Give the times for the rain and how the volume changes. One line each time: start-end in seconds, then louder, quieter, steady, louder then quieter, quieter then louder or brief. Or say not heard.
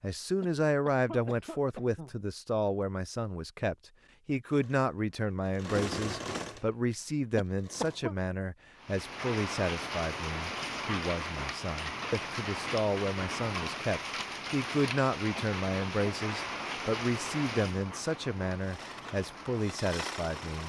8.8-20.6 quieter.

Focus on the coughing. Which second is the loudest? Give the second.
8 s.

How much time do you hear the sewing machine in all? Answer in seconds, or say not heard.
6 s.